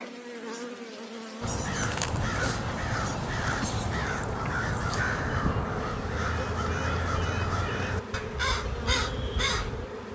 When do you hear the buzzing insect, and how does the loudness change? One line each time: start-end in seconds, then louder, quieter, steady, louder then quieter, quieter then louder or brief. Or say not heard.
0.0-10.0 steady.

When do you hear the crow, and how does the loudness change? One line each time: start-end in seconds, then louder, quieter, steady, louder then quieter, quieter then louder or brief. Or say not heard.
1.4-9.9 steady.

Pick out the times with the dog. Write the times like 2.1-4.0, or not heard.
not heard.